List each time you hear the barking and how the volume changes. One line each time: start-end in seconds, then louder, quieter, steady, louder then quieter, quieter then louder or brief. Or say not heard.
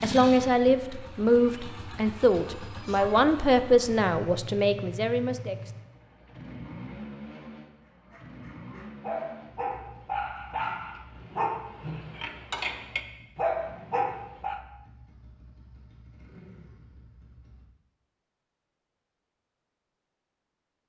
8.0-14.6 louder.